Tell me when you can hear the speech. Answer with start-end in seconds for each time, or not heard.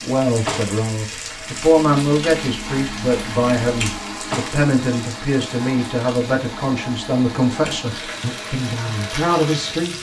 0.0-9.9.